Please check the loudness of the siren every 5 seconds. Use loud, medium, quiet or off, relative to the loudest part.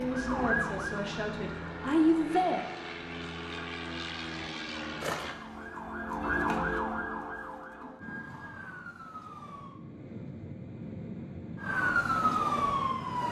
medium, medium, loud.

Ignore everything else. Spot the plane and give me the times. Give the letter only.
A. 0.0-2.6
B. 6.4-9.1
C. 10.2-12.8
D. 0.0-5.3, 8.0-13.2
D.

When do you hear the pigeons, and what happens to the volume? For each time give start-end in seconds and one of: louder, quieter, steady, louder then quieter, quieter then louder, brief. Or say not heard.
not heard.